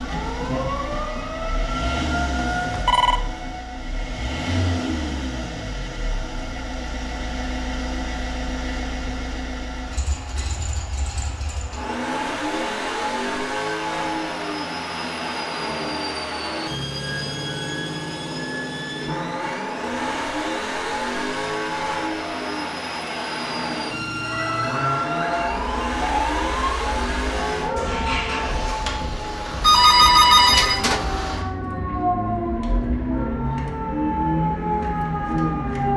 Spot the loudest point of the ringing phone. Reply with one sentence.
The loudest moment of the ringing phone is at 30 seconds.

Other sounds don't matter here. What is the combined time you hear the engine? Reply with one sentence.
You can hear the engine for 36 seconds altogether.